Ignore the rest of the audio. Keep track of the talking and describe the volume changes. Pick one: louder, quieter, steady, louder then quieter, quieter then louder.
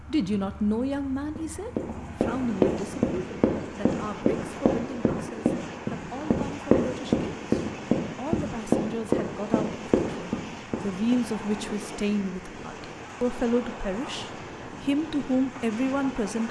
quieter then louder.